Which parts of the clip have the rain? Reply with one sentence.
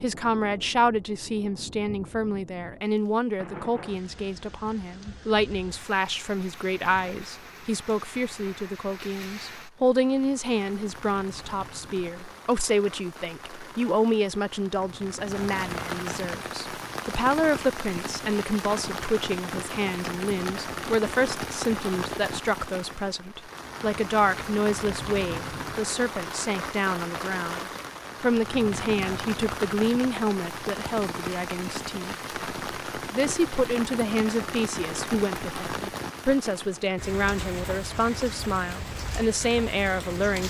The rain can be heard from 0.0 to 40.4 s.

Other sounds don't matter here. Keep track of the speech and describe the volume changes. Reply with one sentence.
The loudness of the speech stays about the same.